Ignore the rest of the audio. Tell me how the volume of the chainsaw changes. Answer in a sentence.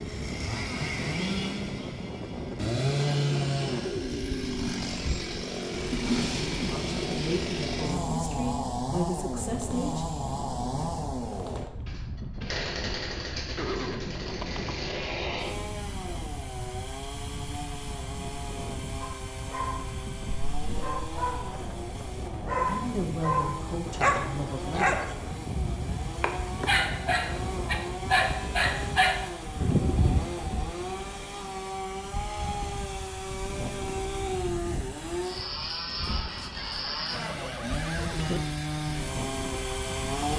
The loudness of the chainsaw goes down, then up.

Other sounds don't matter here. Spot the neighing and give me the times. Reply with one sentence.
The neighing can be heard from 13.6 to 14.8 s and from 36.5 to 38.4 s.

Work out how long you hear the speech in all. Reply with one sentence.
The speech can be heard for 6 seconds in total.